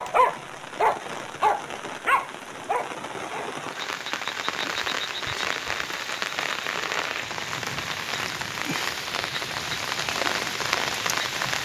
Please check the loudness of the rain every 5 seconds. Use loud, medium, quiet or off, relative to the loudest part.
medium, loud, loud.